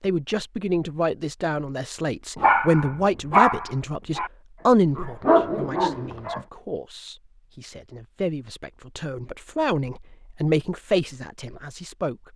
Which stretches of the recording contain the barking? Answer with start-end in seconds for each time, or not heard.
2.4-6.4.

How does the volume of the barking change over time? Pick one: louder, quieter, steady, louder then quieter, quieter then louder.
quieter then louder.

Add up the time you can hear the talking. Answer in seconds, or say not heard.
12 s.